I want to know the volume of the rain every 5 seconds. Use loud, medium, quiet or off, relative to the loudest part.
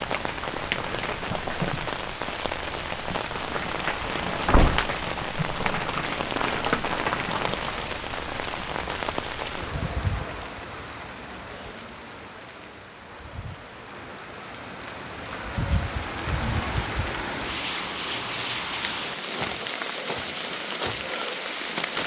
loud, loud, medium, loud, loud.